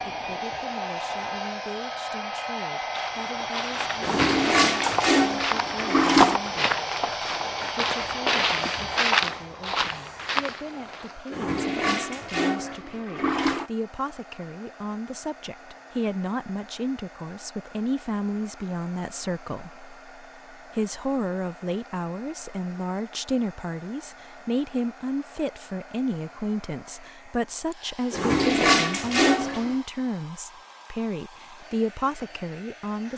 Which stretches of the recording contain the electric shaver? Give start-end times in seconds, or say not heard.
not heard.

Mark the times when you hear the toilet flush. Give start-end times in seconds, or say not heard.
4.0-6.4, 11.3-13.7, 28.1-29.8.